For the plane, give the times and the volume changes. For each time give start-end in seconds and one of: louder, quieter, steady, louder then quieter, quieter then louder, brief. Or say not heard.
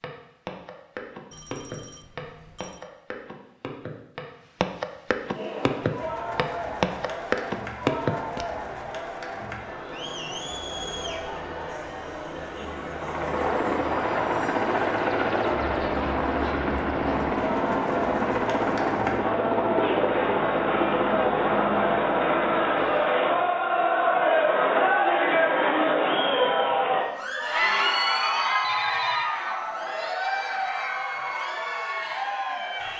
12.8-23.1 steady.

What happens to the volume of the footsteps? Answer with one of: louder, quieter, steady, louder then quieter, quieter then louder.
louder.